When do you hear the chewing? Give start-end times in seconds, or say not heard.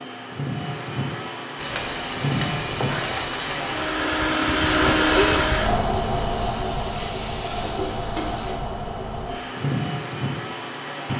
not heard.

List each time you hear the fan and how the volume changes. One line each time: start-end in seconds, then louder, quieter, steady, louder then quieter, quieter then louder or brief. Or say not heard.
0.0-11.1 louder then quieter.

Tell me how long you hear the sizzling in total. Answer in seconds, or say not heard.
7 s.